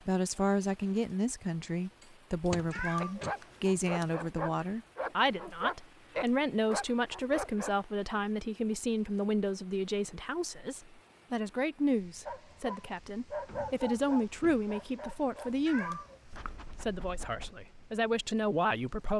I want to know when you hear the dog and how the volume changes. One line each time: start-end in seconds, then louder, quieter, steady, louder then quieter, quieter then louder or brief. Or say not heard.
3.0-7.8 louder then quieter
12.2-17.6 quieter.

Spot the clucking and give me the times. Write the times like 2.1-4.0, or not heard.
not heard.